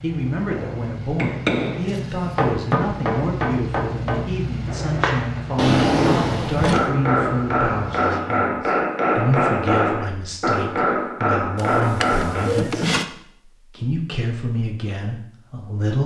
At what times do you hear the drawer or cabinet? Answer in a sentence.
The drawer or cabinet can be heard from 1.7 to 2.8 s, from 5.5 to 6.9 s and from 11.6 to 13.1 s.